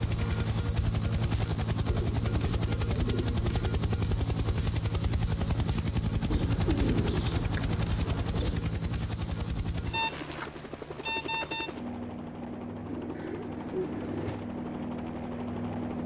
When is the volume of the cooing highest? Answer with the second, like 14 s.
7 s.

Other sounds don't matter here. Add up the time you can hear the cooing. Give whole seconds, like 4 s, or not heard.
6 s.